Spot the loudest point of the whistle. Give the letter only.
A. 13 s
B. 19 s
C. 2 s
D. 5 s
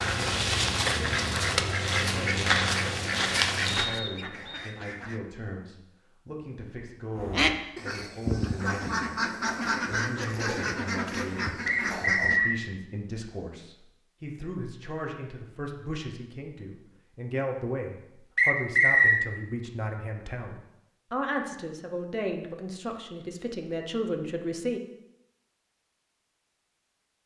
B.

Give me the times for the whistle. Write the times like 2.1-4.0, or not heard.
3.9-4.7, 11.7-12.6, 18.4-19.2.